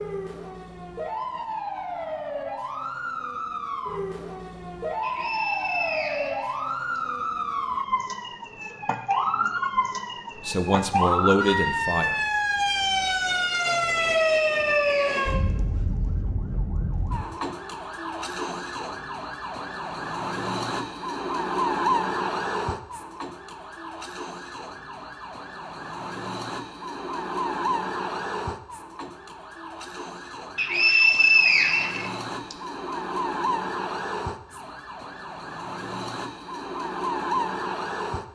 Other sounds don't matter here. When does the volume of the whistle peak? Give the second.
31 s.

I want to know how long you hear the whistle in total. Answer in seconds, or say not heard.
5 s.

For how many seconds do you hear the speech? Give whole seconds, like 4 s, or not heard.
2 s.